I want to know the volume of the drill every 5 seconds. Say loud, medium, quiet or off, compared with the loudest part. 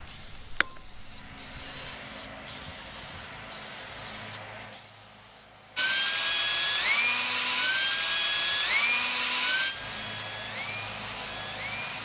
quiet, loud, quiet.